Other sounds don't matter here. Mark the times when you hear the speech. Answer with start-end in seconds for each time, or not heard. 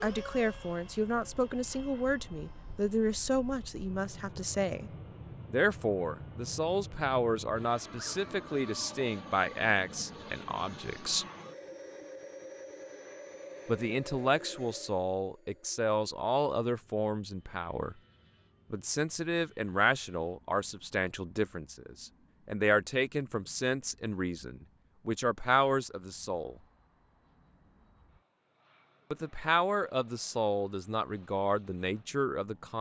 0.0-4.9, 5.5-11.2, 13.7-17.9, 18.7-26.6, 29.1-32.7.